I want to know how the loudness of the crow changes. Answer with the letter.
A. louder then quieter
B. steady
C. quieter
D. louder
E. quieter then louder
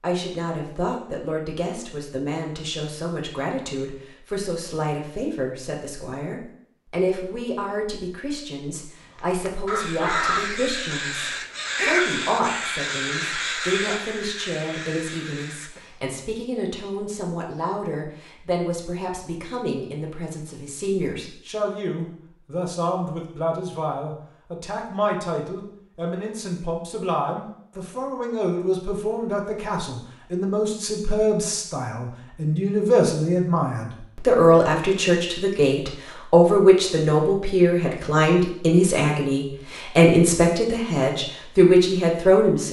C.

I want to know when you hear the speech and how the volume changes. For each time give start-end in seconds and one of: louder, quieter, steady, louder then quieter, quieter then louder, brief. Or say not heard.
0.0-42.6 louder.